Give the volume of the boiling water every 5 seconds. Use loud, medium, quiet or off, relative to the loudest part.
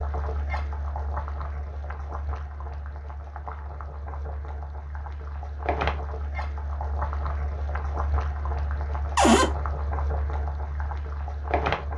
medium, loud, loud.